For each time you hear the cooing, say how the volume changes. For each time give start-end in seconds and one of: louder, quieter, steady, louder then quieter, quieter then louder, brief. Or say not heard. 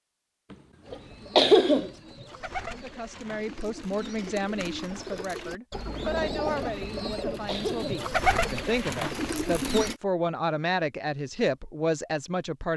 0.8-9.9 louder.